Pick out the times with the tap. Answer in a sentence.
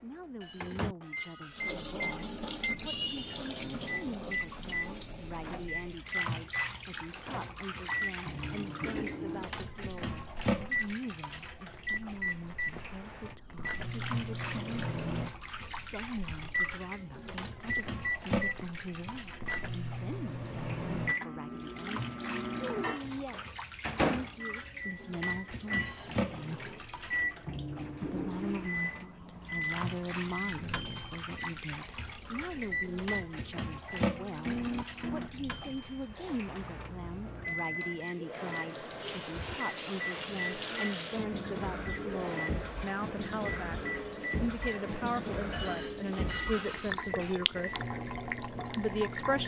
You can hear the tap from 1.5 to 49.4 s.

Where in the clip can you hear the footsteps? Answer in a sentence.
The footsteps can't be heard in this clip.